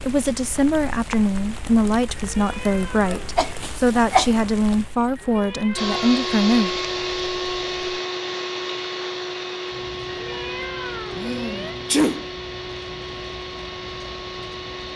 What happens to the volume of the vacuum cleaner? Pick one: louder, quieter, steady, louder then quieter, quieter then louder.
quieter.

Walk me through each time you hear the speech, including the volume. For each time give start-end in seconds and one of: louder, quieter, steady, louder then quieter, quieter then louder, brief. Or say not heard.
0.0-6.7 steady.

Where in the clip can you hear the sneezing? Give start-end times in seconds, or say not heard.
3.1-4.3, 11.2-12.2.